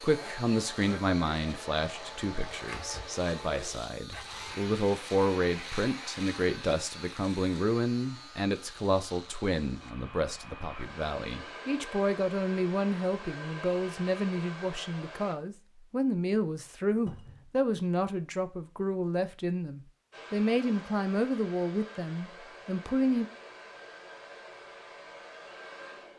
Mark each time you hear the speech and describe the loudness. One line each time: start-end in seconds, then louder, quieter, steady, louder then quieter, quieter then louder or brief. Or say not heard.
0.0-23.2 steady.